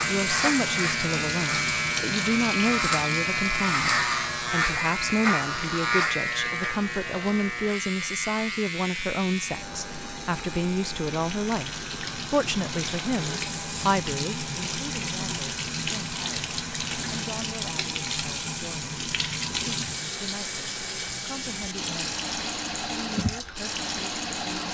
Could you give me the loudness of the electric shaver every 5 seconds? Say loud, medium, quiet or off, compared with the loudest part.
loud, loud, quiet, quiet, quiet.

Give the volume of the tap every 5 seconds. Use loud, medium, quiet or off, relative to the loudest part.
loud, quiet, loud, loud, loud.